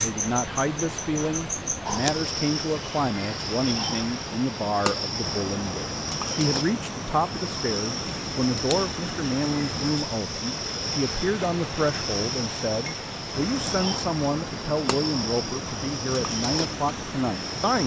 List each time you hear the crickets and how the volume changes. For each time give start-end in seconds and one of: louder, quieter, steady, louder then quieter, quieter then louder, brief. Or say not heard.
0.0-17.8 steady.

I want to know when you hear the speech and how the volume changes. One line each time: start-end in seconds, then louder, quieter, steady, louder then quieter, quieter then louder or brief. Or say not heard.
0.0-17.8 steady.